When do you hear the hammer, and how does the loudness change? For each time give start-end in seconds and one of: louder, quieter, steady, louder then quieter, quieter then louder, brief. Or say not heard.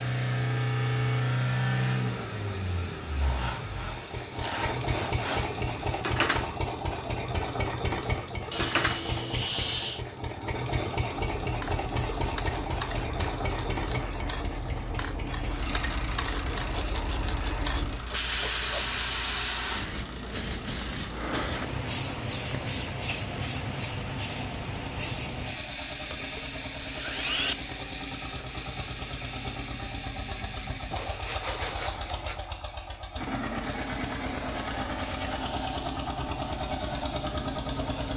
not heard.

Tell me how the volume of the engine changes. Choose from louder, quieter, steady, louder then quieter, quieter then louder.
quieter then louder.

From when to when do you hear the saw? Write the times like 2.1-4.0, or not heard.
3.2-5.7, 8.5-10.1, 16.2-18.9, 25.6-27.6, 30.9-32.5.